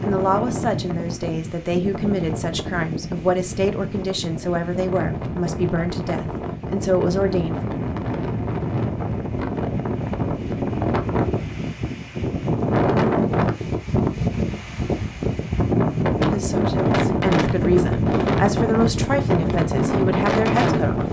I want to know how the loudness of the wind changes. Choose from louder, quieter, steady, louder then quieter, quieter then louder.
louder.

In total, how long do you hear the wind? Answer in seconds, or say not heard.
21 s.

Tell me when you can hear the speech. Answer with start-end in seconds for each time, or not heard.
0.0-7.5, 16.1-21.0.